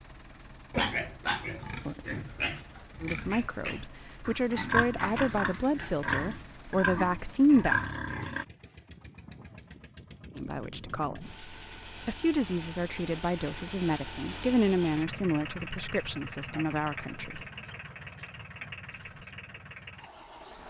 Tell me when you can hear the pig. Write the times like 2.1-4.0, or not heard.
0.7-8.4.